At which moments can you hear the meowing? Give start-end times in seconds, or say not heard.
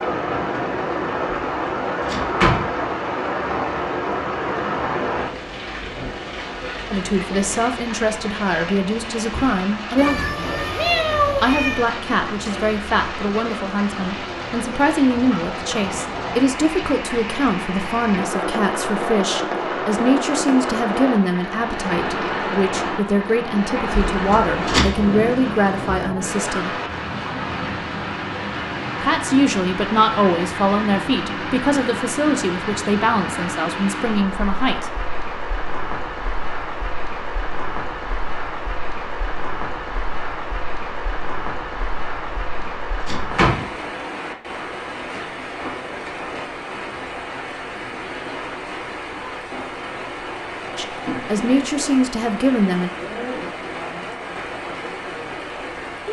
9.9-11.9.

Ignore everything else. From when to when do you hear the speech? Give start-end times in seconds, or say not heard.
6.9-10.2, 11.4-26.8, 29.0-34.9, 50.8-52.9.